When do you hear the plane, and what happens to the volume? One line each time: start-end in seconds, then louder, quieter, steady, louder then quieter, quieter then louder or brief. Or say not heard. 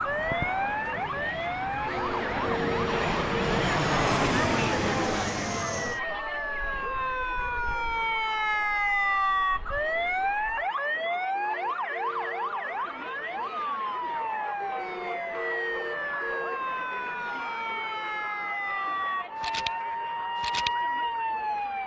0.0-10.7 louder then quieter.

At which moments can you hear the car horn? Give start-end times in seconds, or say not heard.
1.9-3.5, 11.3-12.6, 14.8-16.6.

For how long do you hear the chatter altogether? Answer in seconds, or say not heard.
22 s.